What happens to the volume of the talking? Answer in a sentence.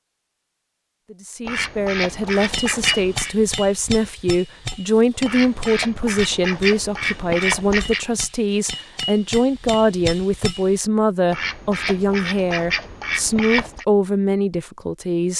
The loudness of the talking stays about the same.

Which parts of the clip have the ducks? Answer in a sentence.
You can hear the ducks from 1.4 to 3.4 s, from 5.2 to 8.1 s and from 11.3 to 13.8 s.